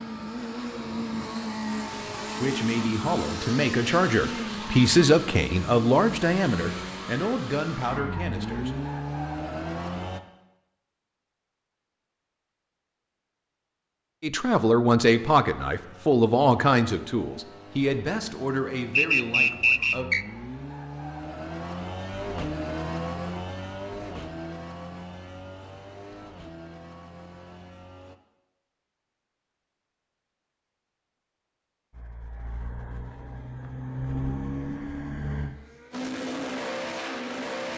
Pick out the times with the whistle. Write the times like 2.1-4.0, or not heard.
18.9-20.2.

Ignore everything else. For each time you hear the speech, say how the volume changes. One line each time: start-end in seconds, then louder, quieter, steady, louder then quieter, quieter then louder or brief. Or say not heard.
1.8-8.8 louder then quieter
14.2-20.1 quieter.